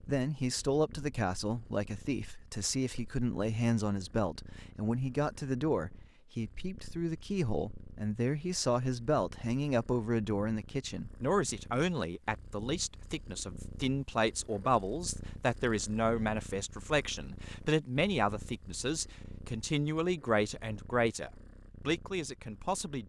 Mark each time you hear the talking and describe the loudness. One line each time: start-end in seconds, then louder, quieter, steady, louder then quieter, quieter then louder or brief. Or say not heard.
0.1-23.0 steady.